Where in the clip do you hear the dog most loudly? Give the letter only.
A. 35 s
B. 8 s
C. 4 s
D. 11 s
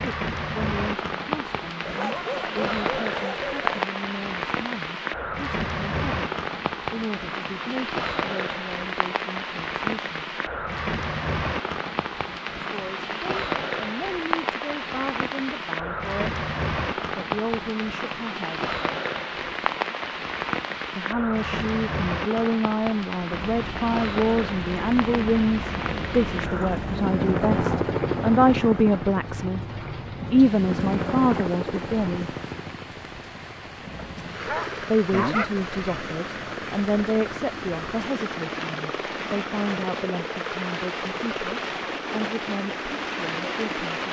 A.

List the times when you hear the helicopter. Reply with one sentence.
You can hear the helicopter from 23.3 to 44.0 s.